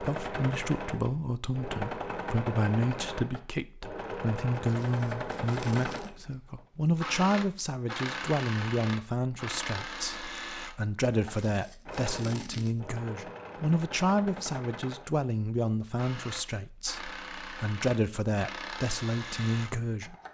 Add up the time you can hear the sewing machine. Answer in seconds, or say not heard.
20 s.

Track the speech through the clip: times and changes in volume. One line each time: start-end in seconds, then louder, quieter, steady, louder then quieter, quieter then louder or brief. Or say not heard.
0.0-20.1 steady.